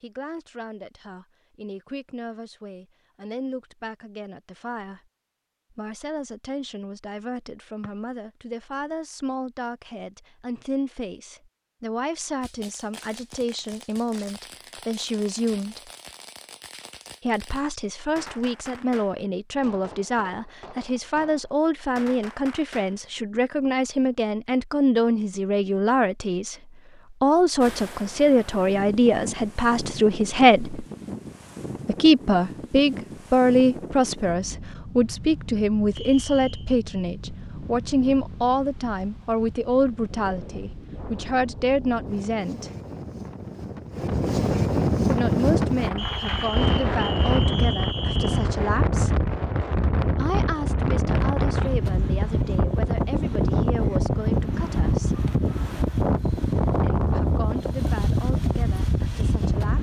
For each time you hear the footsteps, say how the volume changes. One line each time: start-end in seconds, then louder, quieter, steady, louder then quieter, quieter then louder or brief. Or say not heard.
not heard.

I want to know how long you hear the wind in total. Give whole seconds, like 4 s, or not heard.
32 s.